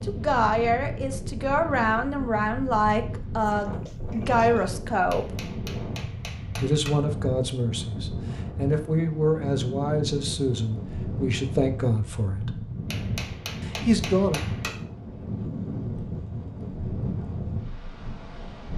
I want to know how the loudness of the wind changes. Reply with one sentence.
The loudness of the wind stays about the same.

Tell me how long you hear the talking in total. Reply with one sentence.
You can hear the talking for 12 seconds altogether.